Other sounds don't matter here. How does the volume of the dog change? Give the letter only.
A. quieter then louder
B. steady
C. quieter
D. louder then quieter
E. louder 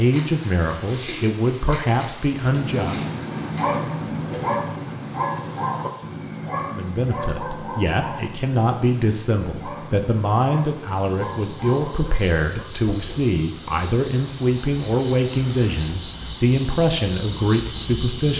C.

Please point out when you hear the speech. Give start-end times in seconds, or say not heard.
0.0-3.0, 6.7-18.3.